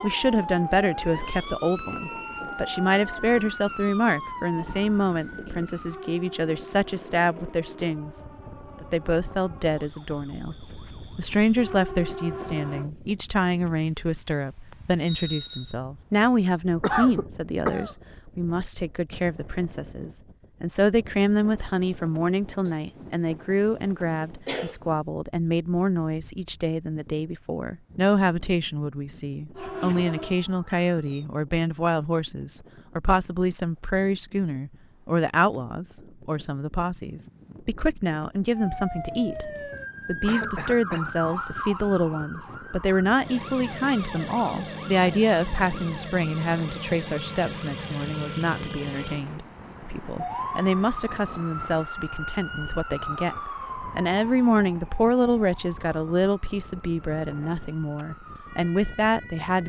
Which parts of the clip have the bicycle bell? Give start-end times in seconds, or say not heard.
15.0-15.8.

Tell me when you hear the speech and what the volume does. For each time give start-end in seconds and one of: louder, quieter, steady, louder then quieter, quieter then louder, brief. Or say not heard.
0.0-8.2 steady
8.8-10.6 brief
11.2-59.6 steady.